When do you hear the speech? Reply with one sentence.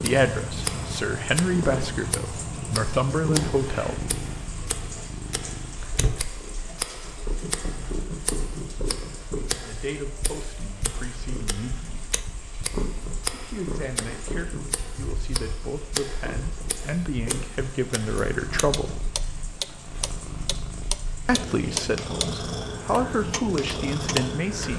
The speech can be heard from 0.0 to 4.0 s, from 9.6 to 12.1 s, from 13.3 to 19.0 s and from 21.2 to 24.7 s.